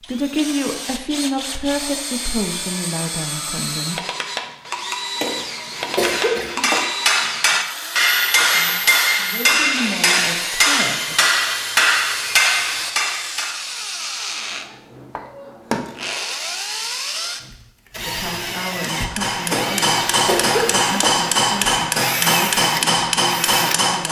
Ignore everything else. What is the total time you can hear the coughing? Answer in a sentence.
You can hear the coughing for 3 seconds altogether.